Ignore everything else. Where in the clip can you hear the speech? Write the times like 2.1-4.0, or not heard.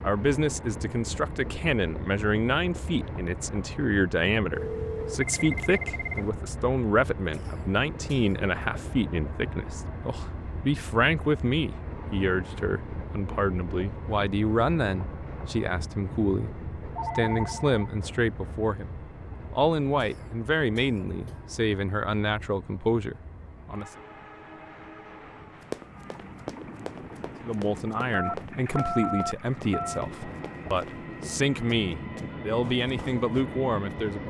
0.0-23.9, 27.4-34.2.